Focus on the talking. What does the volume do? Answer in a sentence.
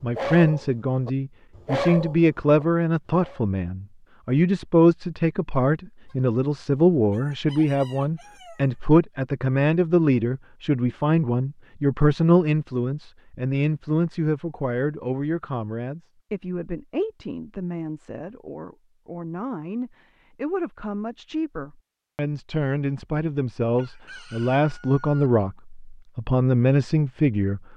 The loudness of the talking goes down, then up.